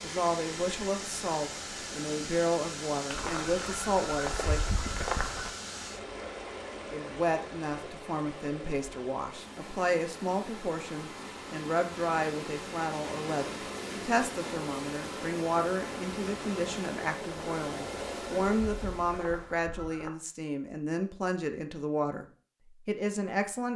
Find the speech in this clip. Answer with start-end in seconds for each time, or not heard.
0.0-4.6, 6.9-23.7.